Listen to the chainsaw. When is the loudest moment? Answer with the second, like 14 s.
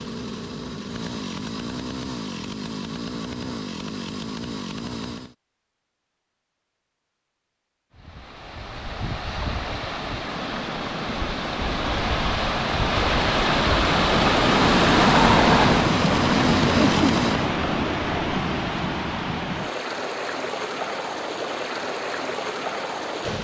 17 s.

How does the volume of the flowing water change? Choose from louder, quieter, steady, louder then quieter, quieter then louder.
louder then quieter.